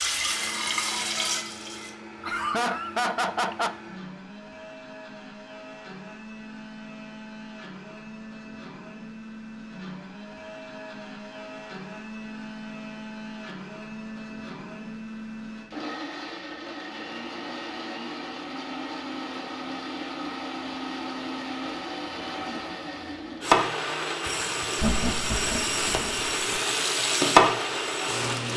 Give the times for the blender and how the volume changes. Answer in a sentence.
You can hear the blender from 0.0 to 28.5 s, getting louder.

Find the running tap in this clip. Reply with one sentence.
You can hear the running tap from 0.0 to 1.9 s and from 23.4 to 28.5 s.